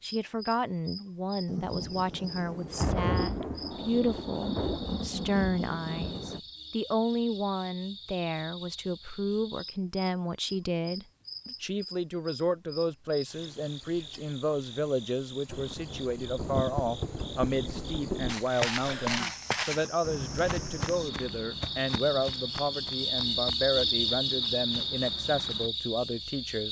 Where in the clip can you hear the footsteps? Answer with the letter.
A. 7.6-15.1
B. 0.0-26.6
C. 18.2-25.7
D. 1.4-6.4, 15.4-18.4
C.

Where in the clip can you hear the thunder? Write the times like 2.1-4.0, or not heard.
1.4-6.4, 15.4-18.4.